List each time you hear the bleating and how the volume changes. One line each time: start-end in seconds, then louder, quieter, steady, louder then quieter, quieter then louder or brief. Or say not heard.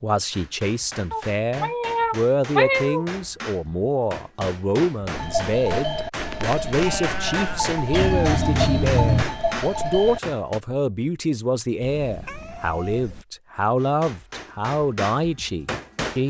5.2-10.2 steady.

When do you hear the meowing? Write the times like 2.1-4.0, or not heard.
1.1-3.0, 7.9-9.2, 11.8-13.2.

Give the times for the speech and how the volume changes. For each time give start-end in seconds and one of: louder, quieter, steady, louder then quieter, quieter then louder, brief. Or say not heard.
0.0-16.2 steady.